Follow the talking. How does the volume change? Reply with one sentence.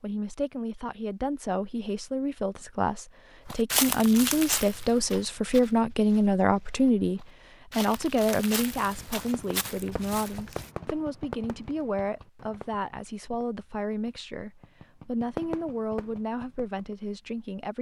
The volume of the talking goes up, then down.